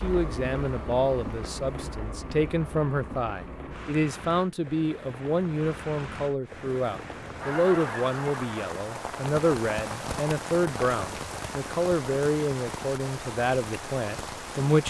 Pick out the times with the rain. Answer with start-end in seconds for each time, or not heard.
0.0-14.8.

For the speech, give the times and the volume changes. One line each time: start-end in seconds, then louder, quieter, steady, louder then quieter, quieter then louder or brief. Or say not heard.
0.0-14.8 steady.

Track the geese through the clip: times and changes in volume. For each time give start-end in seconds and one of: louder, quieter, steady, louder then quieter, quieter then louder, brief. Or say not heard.
not heard.